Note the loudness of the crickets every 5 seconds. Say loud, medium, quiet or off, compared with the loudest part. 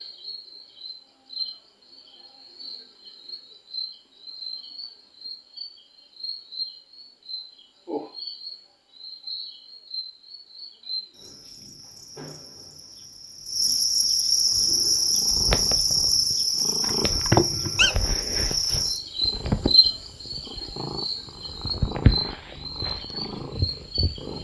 quiet, quiet, loud, loud, medium.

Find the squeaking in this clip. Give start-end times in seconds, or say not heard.
16.8-17.9.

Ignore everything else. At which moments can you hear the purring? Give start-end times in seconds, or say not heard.
14.5-24.4.